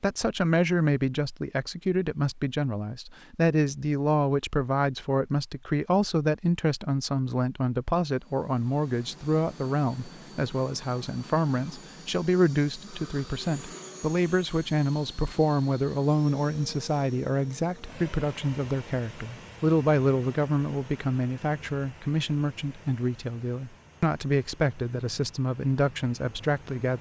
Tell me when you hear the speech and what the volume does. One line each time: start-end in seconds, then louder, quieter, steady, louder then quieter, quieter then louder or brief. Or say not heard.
0.0-26.9 steady.